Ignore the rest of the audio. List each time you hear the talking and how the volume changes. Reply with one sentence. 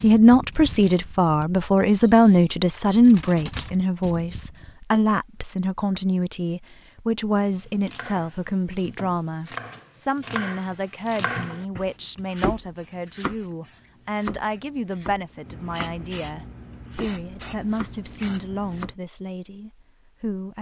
The talking can be heard from 0.0 to 20.5 s, getting quieter.